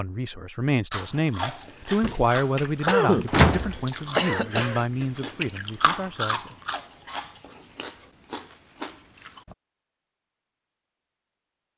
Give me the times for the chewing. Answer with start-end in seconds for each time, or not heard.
0.9-9.6.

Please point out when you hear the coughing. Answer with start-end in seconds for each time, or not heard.
2.0-4.8.